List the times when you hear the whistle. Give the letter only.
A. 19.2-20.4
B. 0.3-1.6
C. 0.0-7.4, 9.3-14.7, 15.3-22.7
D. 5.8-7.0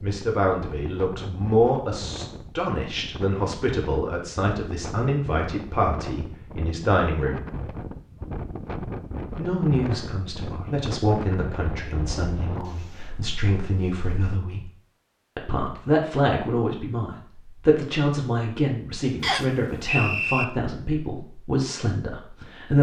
A.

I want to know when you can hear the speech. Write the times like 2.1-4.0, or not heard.
0.0-7.4, 9.3-14.7, 15.3-22.7.